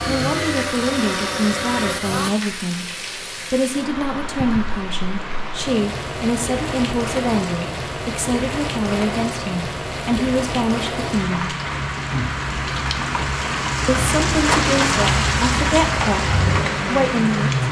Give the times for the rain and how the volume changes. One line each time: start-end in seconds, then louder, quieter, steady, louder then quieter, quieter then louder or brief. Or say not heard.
0.1-17.6 louder.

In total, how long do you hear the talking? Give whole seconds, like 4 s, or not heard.
15 s.